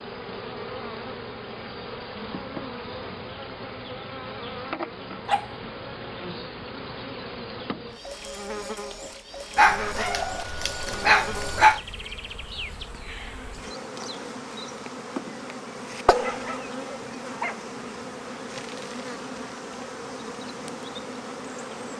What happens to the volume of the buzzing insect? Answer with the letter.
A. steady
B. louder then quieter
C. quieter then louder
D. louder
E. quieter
A.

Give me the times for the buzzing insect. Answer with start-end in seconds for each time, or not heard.
0.0-21.9.